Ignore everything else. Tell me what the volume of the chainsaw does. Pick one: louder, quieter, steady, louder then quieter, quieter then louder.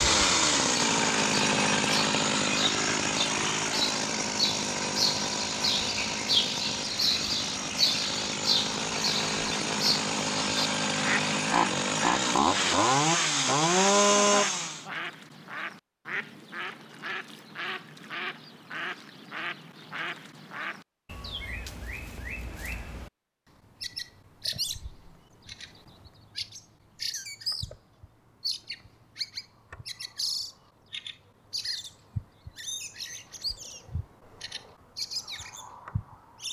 quieter then louder.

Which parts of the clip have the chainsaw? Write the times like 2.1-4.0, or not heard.
0.0-14.8.